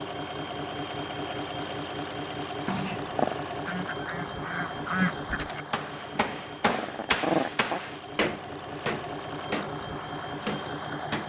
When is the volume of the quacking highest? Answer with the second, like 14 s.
5 s.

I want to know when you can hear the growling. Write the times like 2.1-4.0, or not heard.
2.6-3.4, 6.2-7.8.